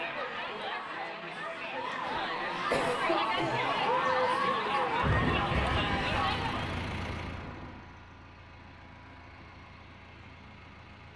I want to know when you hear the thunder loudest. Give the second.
5 s.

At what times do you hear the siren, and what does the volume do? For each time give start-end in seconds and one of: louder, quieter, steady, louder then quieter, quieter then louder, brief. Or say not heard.
0.0-5.0 louder.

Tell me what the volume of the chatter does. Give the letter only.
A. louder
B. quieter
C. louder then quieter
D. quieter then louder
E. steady
A.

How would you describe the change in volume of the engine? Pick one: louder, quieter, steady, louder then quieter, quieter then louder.
quieter.